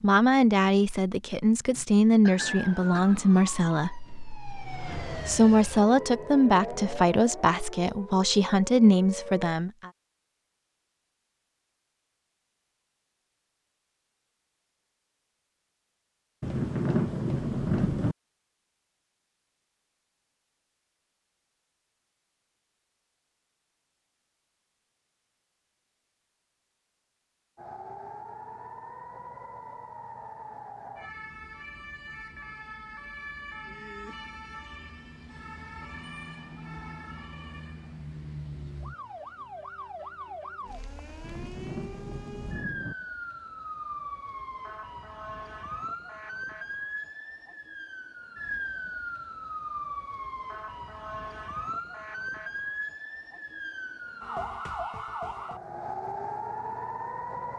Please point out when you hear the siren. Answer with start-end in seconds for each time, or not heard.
2.4-9.6, 27.6-57.5.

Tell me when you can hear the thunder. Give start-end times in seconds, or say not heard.
16.4-18.1, 41.2-43.0.